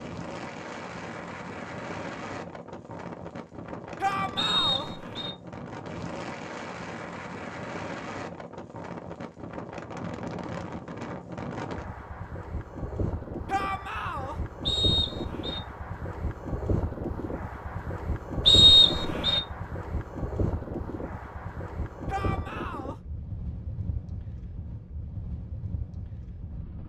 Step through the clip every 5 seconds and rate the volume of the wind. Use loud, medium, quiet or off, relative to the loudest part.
loud, loud, loud, loud, loud, medium.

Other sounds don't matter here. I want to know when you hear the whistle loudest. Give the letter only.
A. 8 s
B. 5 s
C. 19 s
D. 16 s
C.